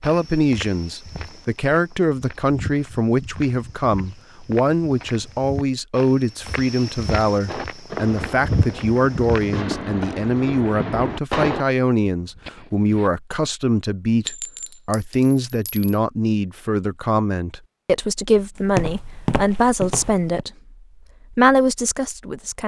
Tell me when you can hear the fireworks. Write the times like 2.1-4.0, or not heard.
7.5-13.1.